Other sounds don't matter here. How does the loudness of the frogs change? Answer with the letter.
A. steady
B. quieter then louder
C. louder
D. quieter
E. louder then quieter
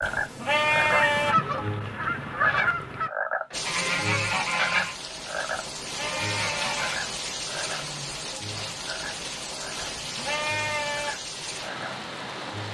D.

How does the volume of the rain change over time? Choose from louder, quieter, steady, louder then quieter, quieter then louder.
steady.